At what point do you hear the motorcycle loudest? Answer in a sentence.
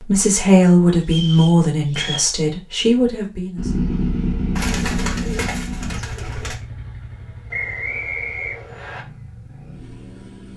The loudest moment of the motorcycle is at 4 seconds.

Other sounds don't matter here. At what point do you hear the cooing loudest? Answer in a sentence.
The volume of the cooing peaks at 5 seconds.